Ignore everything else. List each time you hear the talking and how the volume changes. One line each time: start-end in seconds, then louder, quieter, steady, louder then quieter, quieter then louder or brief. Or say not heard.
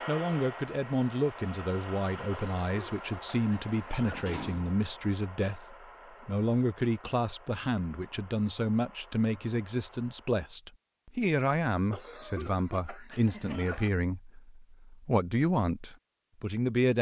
0.1-16.9 steady.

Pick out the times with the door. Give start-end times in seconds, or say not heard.
4.0-4.8.